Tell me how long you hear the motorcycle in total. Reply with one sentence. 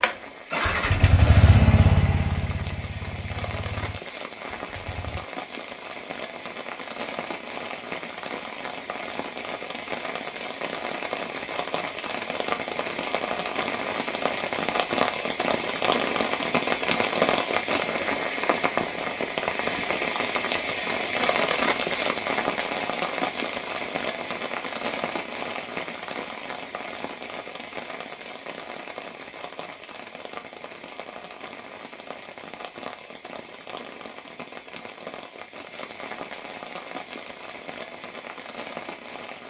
The motorcycle can be heard for 5 seconds in total.